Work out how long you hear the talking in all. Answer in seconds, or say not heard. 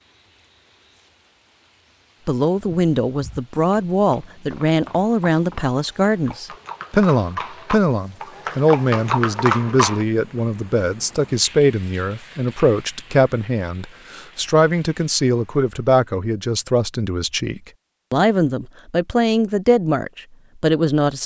19 s.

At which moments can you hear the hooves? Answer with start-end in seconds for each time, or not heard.
2.5-10.1.